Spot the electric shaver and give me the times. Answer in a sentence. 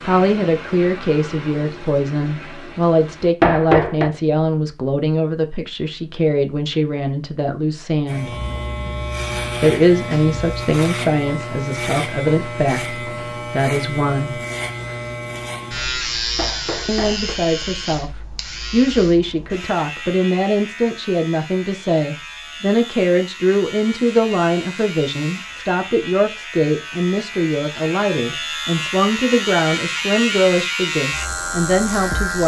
You can hear the electric shaver from 8.1 to 32.4 s.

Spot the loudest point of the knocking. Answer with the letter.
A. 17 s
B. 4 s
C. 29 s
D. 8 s
B.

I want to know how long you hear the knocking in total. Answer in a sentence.
The knocking can be heard for 2 seconds in total.